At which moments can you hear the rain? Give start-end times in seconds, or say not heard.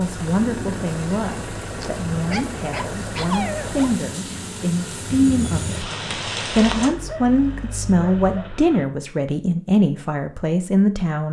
0.0-6.9.